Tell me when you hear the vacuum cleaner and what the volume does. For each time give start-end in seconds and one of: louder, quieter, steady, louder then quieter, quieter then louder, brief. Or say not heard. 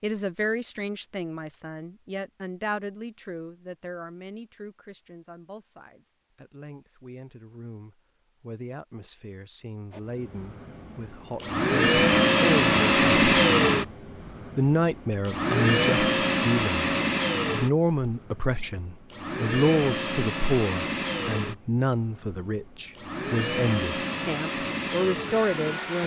9.9-26.0 quieter.